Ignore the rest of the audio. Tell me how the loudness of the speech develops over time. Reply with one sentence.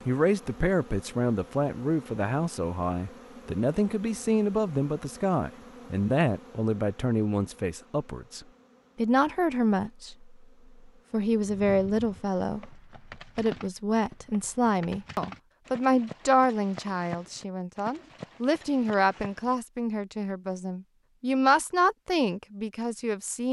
The loudness of the speech stays about the same.